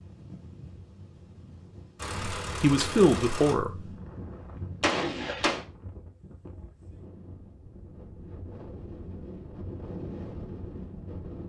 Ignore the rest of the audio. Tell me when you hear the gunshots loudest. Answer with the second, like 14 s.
5 s.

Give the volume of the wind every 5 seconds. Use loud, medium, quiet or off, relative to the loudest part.
medium, medium, loud.